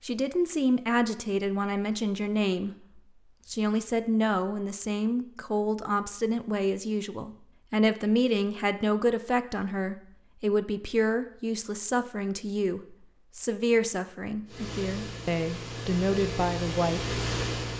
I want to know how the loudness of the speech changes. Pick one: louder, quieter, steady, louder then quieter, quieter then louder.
steady.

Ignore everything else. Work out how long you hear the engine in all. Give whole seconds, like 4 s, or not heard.
3 s.